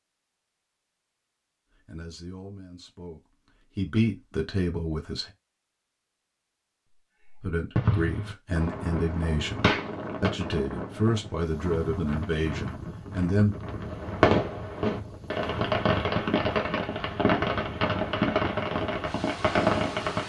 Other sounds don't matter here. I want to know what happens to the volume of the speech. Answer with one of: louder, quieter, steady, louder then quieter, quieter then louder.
louder.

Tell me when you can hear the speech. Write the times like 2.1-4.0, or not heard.
1.9-5.3, 7.4-13.6.